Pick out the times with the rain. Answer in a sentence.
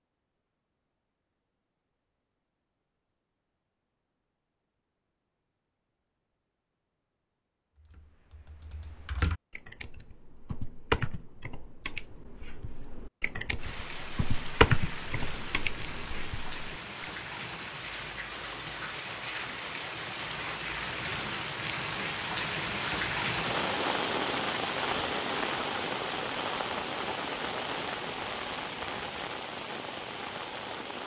The rain can be heard from 13.6 to 31.0 s.